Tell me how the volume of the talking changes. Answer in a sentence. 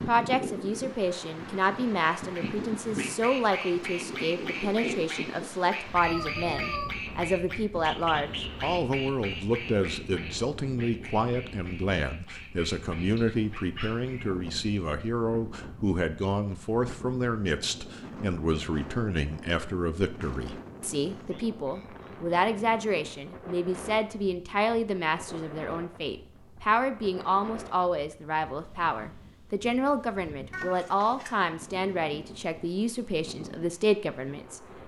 The loudness of the talking stays about the same.